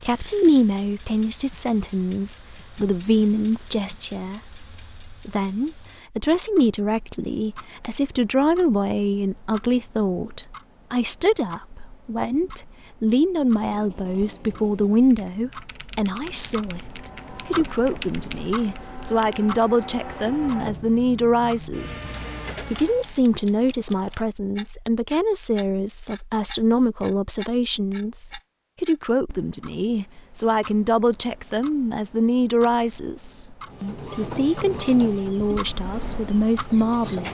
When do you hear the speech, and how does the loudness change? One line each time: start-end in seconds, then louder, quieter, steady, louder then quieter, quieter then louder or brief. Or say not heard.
0.0-37.2 steady.